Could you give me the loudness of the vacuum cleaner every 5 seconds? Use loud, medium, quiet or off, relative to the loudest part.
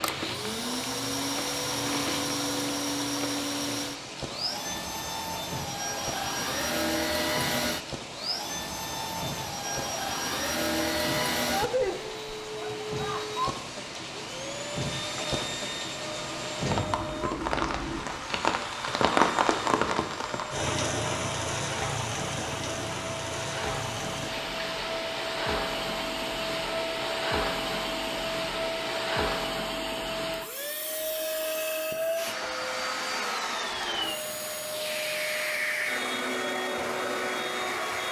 loud, loud, loud, medium, medium, loud, loud, loud.